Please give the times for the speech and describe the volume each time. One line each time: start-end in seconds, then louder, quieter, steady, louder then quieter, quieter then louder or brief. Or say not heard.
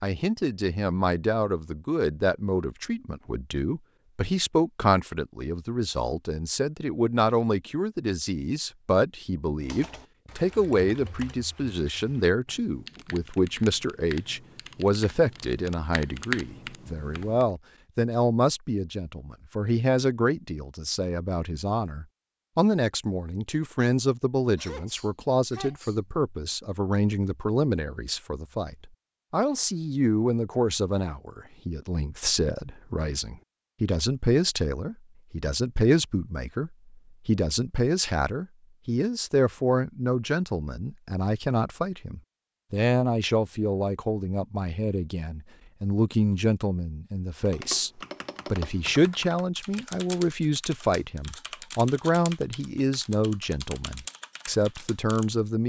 0.0-55.6 steady.